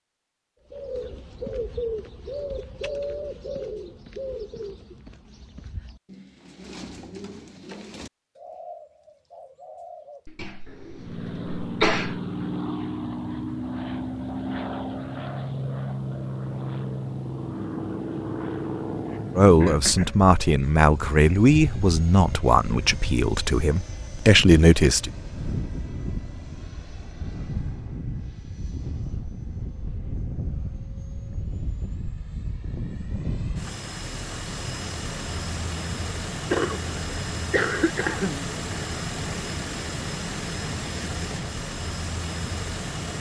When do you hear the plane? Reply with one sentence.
You can hear the plane from 10.9 to 43.1 s.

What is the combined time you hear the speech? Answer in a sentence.
The speech can be heard for 6 seconds in total.